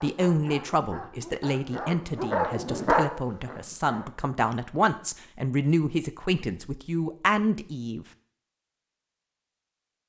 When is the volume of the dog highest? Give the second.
3 s.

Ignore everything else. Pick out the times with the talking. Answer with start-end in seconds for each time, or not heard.
0.0-8.1.